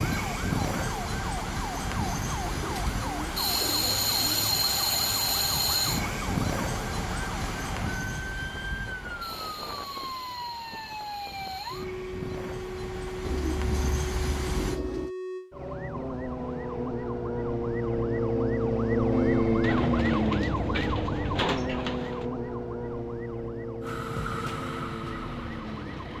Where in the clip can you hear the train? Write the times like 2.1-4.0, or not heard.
0.0-14.8, 23.8-26.1.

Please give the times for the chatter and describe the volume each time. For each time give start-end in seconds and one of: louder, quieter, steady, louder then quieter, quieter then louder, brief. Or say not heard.
not heard.